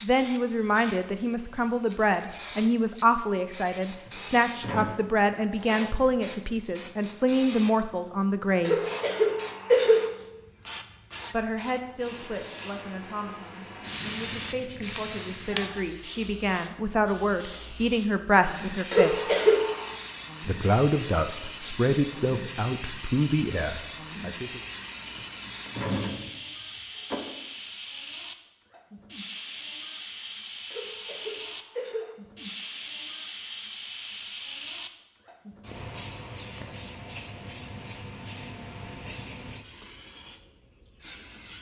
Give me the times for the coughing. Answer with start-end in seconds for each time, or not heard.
8.7-10.1, 18.9-19.9, 30.7-32.1.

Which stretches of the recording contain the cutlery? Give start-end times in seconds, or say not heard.
not heard.